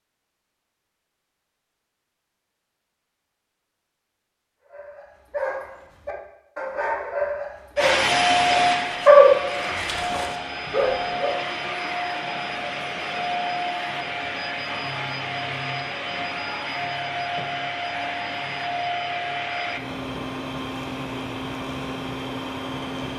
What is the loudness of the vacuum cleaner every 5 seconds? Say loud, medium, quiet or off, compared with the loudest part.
off, loud, medium, medium, medium.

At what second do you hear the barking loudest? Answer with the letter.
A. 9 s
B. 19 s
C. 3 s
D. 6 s
A.